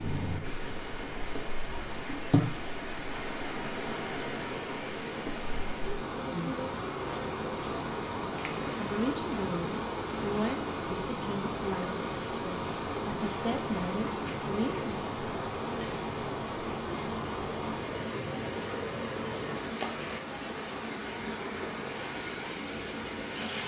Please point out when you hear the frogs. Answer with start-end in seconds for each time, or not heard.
not heard.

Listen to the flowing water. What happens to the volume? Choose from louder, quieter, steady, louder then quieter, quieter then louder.
steady.